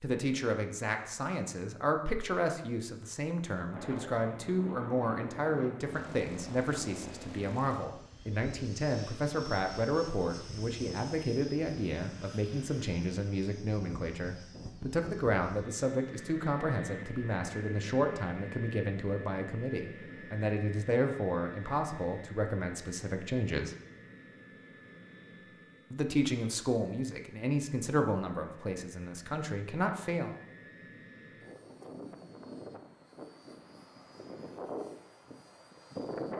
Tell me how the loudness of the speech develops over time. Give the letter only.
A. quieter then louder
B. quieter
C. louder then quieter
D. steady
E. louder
D.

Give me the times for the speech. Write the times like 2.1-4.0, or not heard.
0.0-23.8, 25.9-30.4.